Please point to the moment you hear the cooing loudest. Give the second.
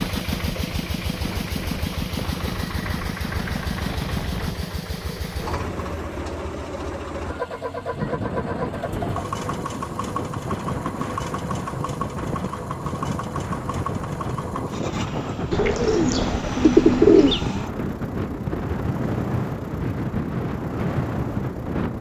17 s.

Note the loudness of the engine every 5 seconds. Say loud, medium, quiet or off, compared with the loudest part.
loud, loud, loud, medium, medium.